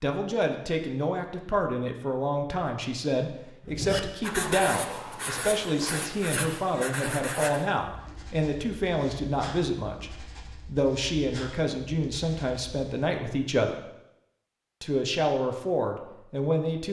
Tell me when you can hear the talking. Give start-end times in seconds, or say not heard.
0.0-13.8, 14.8-16.8.